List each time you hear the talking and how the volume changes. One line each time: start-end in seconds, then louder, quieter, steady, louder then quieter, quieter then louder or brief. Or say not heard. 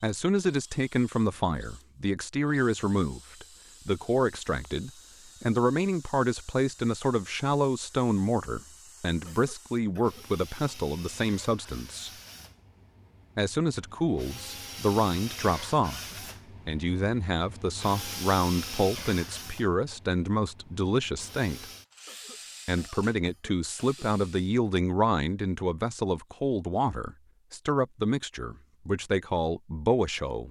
0.0-12.1 steady
13.3-16.0 brief
16.6-21.6 steady
22.6-30.4 steady.